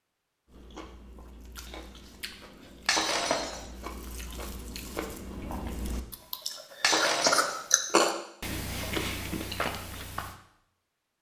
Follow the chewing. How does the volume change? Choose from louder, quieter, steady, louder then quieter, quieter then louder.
louder then quieter.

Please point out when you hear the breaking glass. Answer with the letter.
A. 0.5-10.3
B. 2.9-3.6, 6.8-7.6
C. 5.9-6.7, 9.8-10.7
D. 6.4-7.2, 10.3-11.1
B.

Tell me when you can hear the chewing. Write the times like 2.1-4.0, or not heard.
0.5-10.3.